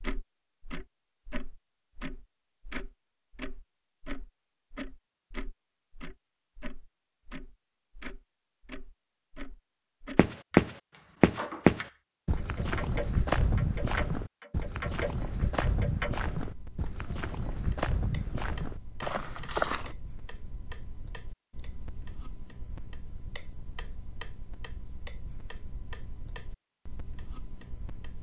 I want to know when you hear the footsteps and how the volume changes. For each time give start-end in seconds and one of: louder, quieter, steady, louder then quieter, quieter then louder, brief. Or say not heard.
10.2-19.9 quieter.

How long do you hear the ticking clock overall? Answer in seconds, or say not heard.
28 s.